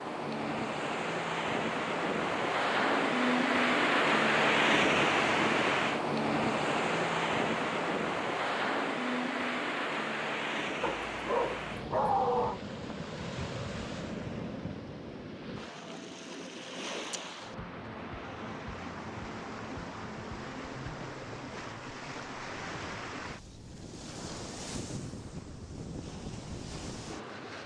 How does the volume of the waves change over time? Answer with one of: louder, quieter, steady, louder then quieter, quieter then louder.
quieter.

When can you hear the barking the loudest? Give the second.
12 s.